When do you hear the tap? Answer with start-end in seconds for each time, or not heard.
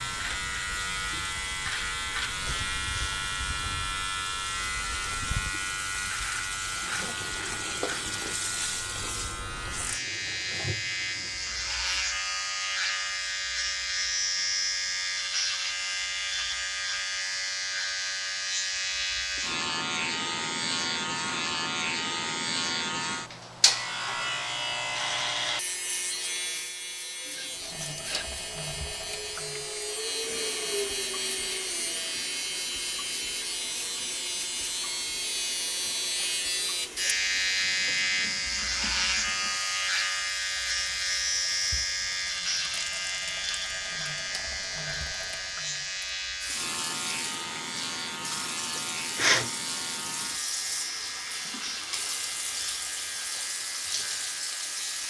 0.1-12.1, 27.5-55.0.